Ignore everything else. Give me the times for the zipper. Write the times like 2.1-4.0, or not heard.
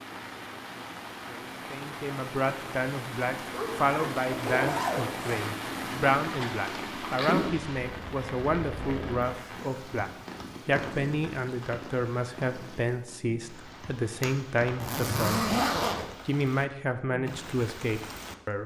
3.5-5.5, 14.8-16.1.